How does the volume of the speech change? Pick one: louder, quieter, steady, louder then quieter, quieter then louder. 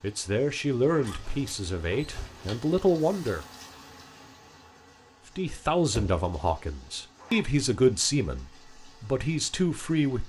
steady.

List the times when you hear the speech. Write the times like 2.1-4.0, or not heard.
0.0-3.5, 5.3-10.2.